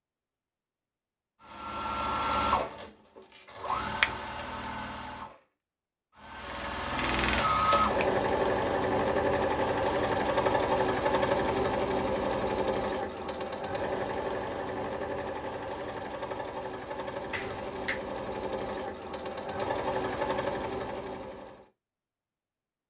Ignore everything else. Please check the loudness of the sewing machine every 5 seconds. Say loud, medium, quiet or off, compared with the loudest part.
medium, loud, loud, medium, medium.